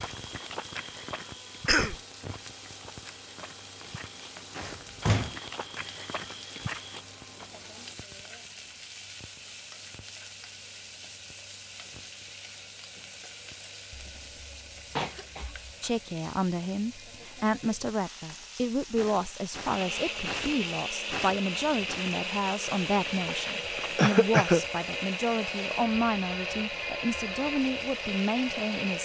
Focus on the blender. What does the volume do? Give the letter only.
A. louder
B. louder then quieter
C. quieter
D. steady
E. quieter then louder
A.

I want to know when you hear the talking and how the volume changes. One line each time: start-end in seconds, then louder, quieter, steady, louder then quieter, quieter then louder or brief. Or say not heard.
15.8-28.9 steady.